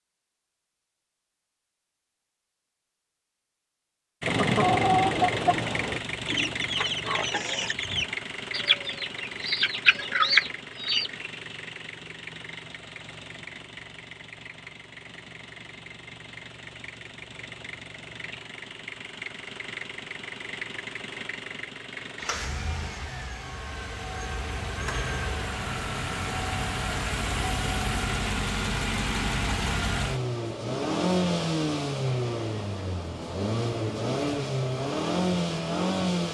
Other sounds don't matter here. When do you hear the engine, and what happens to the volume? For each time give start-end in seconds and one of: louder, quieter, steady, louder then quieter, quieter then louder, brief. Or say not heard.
4.2-36.2 quieter then louder.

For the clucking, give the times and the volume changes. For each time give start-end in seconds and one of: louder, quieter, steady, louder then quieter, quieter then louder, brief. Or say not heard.
4.2-11.1 quieter then louder.